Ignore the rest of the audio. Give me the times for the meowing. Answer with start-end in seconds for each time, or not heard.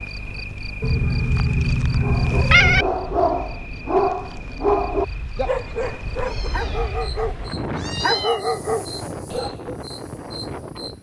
0.8-2.9, 5.8-8.4.